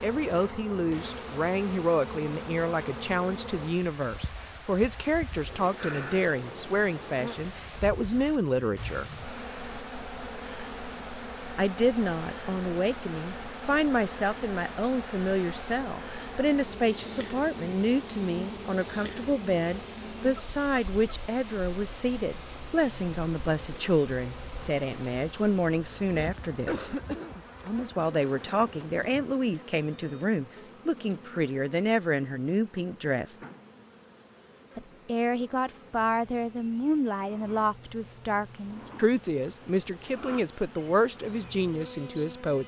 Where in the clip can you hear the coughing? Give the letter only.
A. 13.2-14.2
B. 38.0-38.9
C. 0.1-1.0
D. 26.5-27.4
D.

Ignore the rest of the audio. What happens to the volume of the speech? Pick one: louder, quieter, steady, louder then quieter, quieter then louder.
steady.